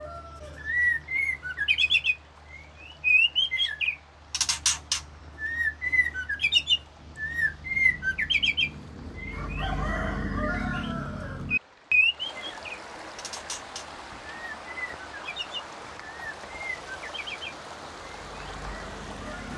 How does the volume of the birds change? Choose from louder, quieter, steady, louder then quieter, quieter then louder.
quieter.